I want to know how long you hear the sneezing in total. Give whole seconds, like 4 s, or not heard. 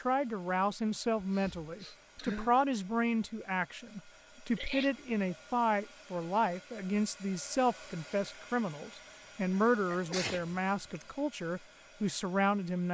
3 s.